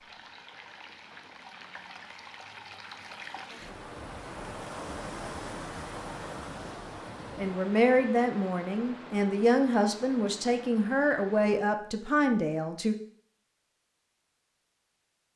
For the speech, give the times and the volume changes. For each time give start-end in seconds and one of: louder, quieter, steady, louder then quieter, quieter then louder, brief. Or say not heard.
7.3-12.9 steady.